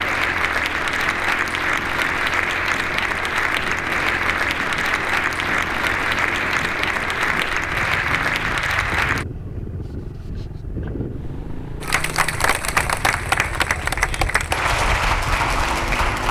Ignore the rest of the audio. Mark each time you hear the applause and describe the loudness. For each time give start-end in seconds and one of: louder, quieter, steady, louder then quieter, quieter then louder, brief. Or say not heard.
0.0-9.2 steady
11.8-16.2 steady.